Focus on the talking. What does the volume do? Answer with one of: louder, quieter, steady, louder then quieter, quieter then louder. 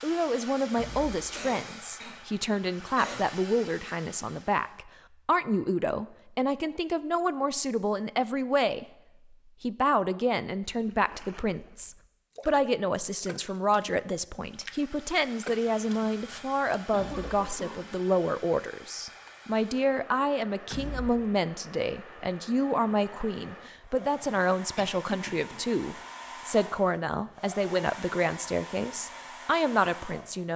steady.